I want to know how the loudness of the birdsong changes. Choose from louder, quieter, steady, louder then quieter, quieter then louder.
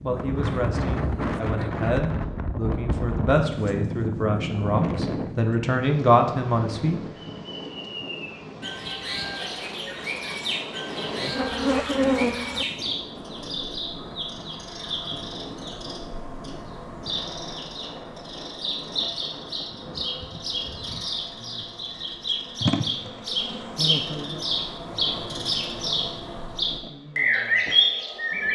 louder.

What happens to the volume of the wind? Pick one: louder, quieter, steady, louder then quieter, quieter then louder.
quieter.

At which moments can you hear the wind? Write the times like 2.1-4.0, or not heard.
0.0-20.1.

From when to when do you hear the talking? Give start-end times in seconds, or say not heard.
0.0-7.0.